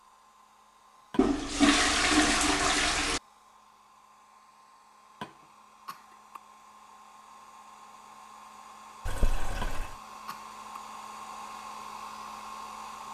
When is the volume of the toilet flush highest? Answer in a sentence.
The loudest moment of the toilet flush is at 2 seconds.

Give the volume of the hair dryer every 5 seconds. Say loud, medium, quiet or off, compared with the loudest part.
quiet, medium, loud.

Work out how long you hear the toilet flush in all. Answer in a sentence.
You can hear the toilet flush for 3 seconds altogether.